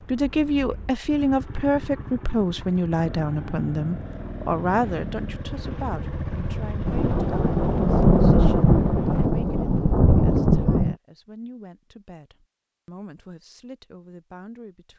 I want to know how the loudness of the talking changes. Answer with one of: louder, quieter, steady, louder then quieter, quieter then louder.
quieter.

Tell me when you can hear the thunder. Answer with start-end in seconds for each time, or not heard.
6.8-10.9.